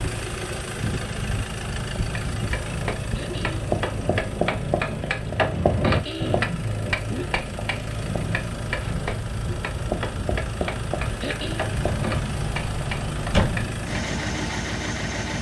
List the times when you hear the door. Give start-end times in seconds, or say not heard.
11.8-13.7.